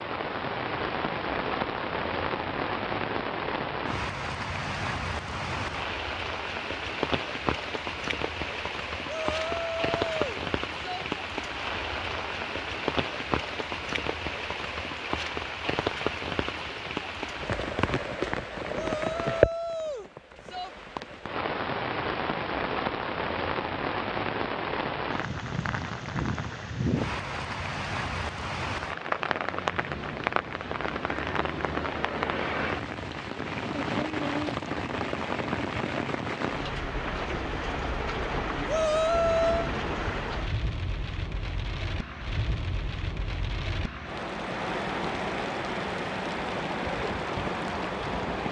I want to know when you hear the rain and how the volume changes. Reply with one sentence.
You can hear the rain from 0.0 to 48.4 s, at a steady volume.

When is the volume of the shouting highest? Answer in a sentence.
The loudest moment of the shouting is at 39 seconds.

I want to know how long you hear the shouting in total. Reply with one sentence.
You can hear the shouting for 5 seconds altogether.